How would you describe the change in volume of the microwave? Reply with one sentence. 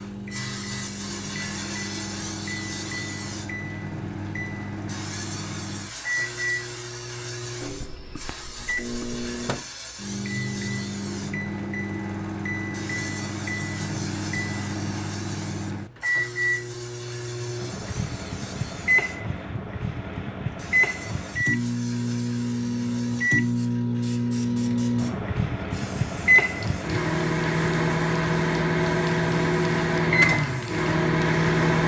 The loudness of the microwave goes up.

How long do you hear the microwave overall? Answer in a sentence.
The microwave can be heard for 32 seconds in total.